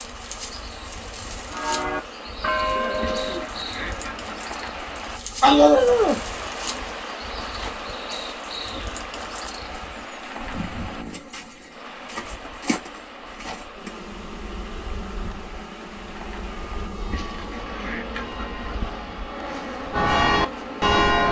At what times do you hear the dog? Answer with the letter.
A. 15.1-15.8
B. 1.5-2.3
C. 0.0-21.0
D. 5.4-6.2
D.